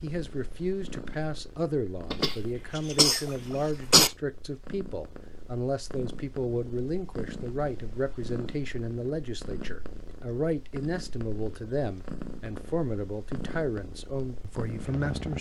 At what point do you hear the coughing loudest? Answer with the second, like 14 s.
4 s.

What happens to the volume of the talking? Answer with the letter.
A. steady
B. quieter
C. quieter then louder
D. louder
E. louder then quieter
A.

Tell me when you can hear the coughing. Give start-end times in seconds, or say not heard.
2.1-4.1.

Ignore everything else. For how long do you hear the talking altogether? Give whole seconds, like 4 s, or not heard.
15 s.